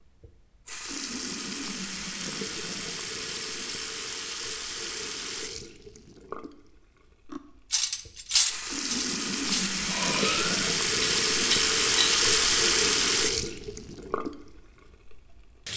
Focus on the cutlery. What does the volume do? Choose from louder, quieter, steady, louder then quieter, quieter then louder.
quieter then louder.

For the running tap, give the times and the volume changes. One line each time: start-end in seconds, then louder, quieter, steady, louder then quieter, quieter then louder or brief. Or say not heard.
0.0-15.7 louder.